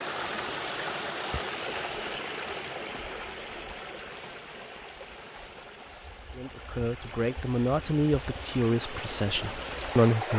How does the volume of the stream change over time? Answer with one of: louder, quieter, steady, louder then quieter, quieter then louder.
quieter then louder.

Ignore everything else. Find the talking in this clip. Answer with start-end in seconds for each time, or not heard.
6.3-10.3.